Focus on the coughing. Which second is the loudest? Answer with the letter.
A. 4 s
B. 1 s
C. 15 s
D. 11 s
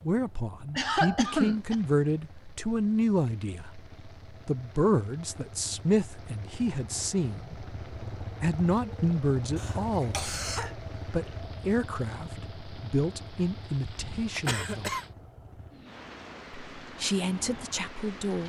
B.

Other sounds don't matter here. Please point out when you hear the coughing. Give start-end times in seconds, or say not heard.
0.8-1.8, 9.6-10.7, 13.8-15.1.